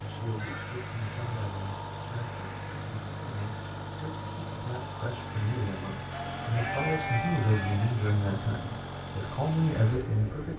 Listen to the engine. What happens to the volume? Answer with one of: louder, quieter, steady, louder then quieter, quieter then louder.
steady.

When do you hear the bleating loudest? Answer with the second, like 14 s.
7 s.